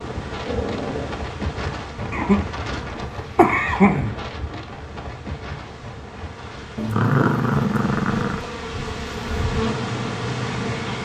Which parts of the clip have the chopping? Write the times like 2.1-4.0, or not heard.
not heard.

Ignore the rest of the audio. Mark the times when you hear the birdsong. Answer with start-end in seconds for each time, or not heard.
not heard.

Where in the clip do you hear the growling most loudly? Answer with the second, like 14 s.
7 s.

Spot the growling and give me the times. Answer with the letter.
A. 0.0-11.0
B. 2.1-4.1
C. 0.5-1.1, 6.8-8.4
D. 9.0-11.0
C.